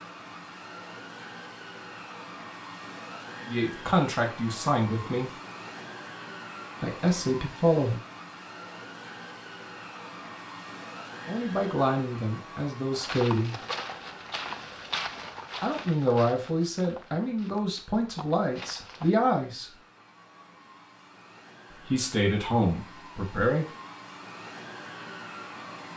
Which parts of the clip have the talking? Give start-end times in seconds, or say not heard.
3.5-5.3, 6.8-8.0, 11.2-13.6, 15.6-19.7, 21.7-23.6.